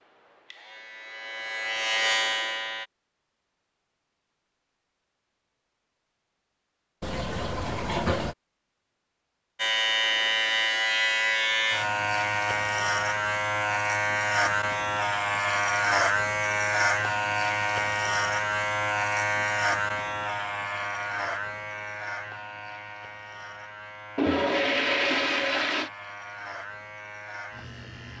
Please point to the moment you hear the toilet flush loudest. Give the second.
25 s.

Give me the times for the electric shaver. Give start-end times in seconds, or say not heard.
0.0-2.9, 9.6-28.1.